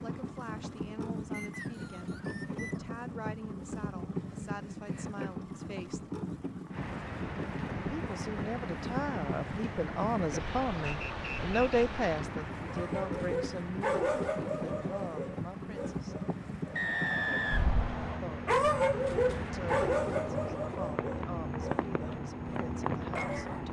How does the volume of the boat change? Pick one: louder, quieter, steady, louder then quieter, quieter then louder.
steady.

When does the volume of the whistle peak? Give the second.
17 s.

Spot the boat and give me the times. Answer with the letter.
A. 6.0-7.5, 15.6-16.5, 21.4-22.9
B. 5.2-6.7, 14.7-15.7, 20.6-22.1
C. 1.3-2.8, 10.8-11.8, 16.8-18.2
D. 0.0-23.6
D.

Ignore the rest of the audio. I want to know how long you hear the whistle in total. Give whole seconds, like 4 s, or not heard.
4 s.